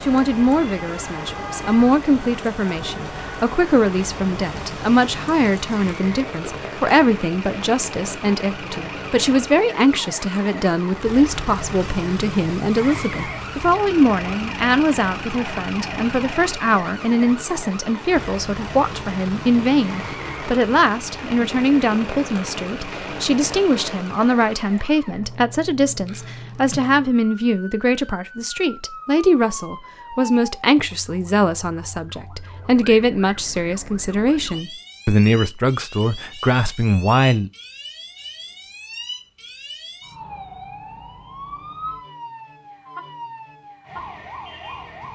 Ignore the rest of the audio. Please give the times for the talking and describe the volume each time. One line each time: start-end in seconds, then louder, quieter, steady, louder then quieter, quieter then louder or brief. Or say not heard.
0.0-37.5 steady.